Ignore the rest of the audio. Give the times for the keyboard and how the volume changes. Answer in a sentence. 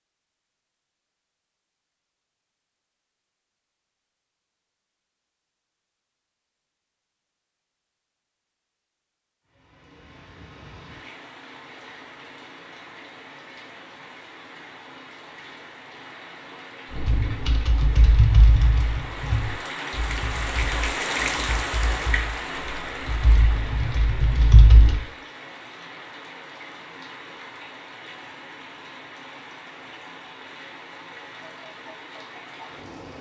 The keyboard can be heard from 16.9 to 25.0 s, getting quieter then louder.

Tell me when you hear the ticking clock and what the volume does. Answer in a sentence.
You can't hear the ticking clock here.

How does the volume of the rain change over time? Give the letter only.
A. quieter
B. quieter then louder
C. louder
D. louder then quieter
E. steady
D.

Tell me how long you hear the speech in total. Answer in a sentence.
You can't hear the speech here.